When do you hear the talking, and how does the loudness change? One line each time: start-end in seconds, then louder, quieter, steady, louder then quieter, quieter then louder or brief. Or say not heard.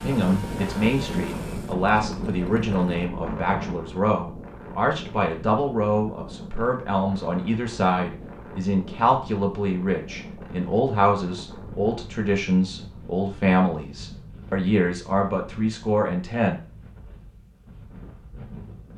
0.0-16.6 steady.